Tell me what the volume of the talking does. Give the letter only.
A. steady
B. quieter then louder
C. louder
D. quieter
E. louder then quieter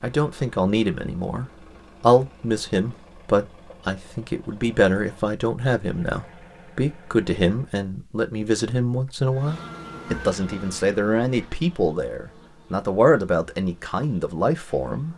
A.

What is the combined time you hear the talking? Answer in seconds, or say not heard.
15 s.